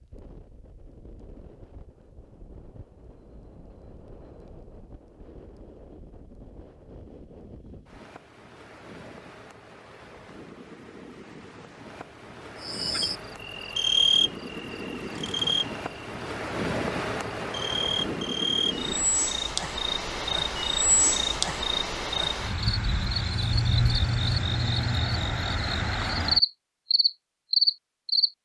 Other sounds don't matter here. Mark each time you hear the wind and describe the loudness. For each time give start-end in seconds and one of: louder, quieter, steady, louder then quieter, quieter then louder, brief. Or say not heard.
0.0-19.1 louder.